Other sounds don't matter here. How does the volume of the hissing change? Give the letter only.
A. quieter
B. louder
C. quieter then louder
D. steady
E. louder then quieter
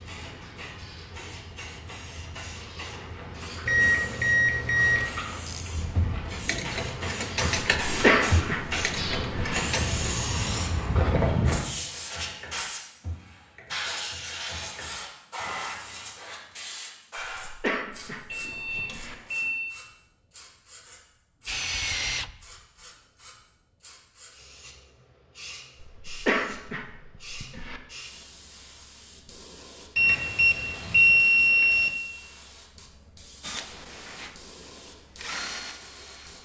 E.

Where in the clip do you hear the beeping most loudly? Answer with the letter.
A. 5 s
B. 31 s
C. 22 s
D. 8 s
B.